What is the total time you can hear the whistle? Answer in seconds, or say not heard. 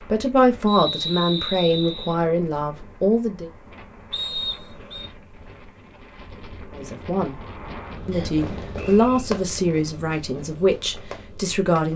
4 s.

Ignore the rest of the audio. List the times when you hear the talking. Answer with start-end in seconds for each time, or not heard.
0.1-3.5, 6.8-7.3, 8.1-11.9.